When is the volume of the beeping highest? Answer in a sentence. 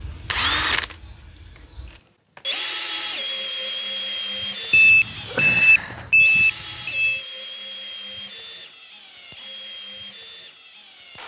The volume of the beeping peaks at 6 seconds.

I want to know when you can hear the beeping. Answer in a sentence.
You can hear the beeping from 4.7 to 7.2 s.